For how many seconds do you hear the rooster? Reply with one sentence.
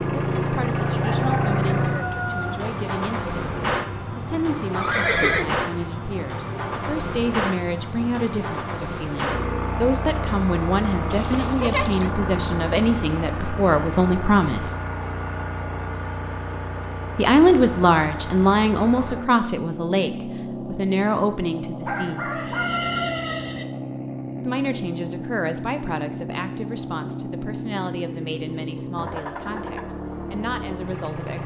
You can hear the rooster for 3 seconds altogether.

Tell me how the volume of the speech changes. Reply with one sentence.
The loudness of the speech goes up, then down.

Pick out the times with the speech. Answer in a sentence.
The speech can be heard from 0.0 to 14.8 s, from 17.1 to 22.2 s and from 24.4 to 31.4 s.